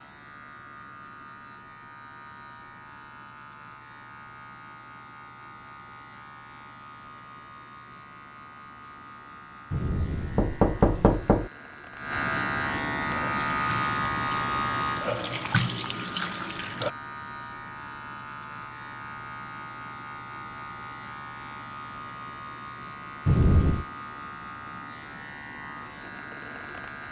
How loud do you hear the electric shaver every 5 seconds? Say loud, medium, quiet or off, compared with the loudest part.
quiet, quiet, loud, medium, medium, medium.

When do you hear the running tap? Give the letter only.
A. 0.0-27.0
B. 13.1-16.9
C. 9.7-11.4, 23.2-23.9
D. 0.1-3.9
B.